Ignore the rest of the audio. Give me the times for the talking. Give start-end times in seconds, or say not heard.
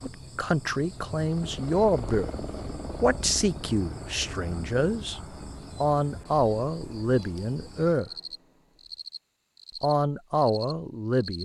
0.0-2.3, 3.0-5.2, 5.8-8.1, 9.8-11.4.